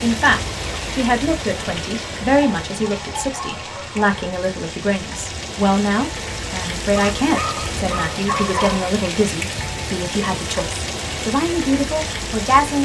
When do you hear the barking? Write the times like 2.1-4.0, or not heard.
2.3-4.3, 7.2-8.9.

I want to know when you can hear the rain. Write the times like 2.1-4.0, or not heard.
0.0-12.7.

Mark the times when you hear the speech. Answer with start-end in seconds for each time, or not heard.
0.0-12.7.